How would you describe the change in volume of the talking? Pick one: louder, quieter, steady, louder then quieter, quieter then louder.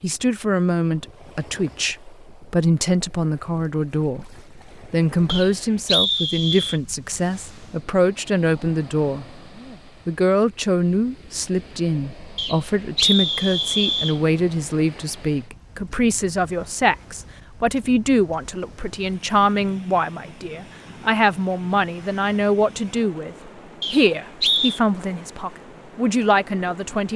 steady.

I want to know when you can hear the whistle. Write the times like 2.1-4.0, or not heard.
5.2-6.8, 12.3-14.2, 23.8-24.8.